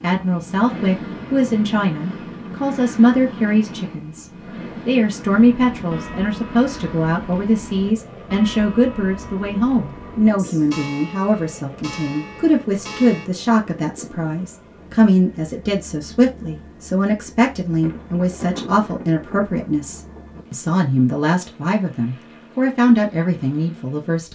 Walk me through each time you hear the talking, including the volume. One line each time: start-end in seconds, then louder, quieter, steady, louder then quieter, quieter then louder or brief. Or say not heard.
0.0-24.3 steady.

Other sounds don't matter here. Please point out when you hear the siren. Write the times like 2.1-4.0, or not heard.
not heard.